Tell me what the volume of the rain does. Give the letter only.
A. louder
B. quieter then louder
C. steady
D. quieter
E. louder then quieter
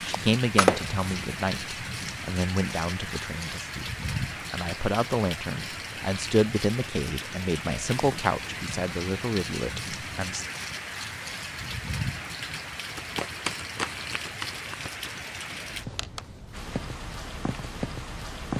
C.